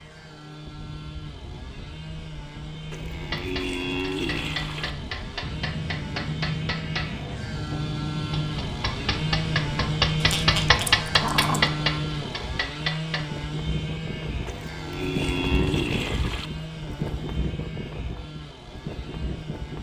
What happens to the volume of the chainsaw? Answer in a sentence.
The loudness of the chainsaw goes up, then down.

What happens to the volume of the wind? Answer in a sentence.
The loudness of the wind goes up.